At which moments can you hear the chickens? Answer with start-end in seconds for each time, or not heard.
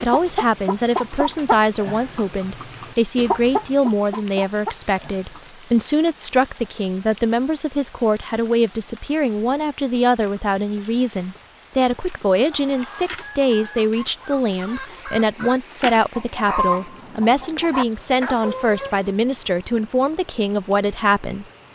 0.0-5.5, 12.3-19.1.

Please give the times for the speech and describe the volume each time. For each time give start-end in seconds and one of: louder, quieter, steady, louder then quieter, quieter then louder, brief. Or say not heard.
0.0-21.7 steady.